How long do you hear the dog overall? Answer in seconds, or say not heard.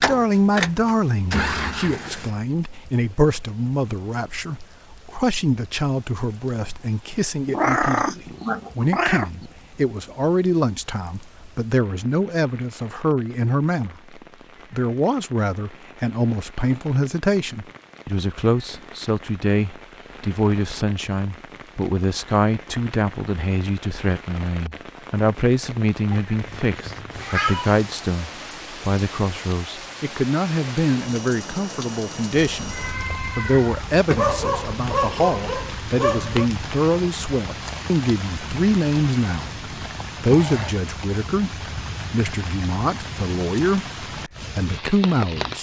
2 s.